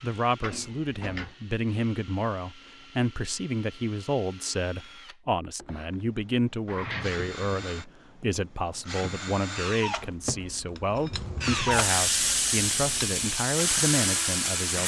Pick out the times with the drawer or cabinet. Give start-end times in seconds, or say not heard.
0.4-1.4, 6.7-7.2, 10.0-10.4.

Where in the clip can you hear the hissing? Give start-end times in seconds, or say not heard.
11.1-14.8.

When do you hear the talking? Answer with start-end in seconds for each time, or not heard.
0.0-14.8.